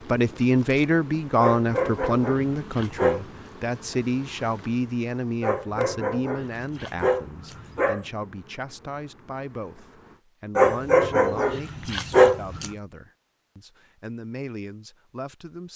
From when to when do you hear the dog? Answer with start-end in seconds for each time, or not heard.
1.4-3.4, 5.4-8.1, 10.6-12.7.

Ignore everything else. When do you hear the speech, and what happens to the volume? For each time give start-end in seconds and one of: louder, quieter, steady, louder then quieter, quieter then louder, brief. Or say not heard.
0.1-15.7 quieter.